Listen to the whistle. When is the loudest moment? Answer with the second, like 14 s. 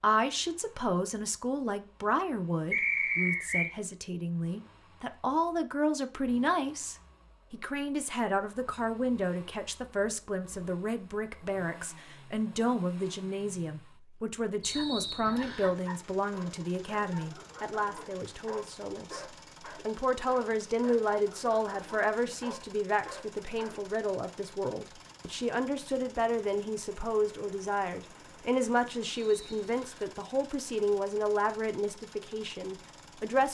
3 s.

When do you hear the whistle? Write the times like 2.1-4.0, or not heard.
2.7-3.7, 14.6-15.8, 29.2-30.1.